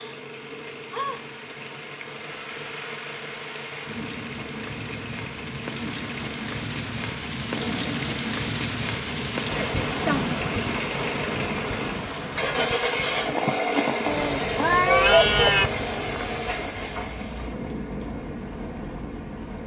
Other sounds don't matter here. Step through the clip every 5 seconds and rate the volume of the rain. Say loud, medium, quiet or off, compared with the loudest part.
medium, loud, loud, medium.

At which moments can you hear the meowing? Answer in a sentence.
The meowing can be heard from 14.1 to 15.7 s.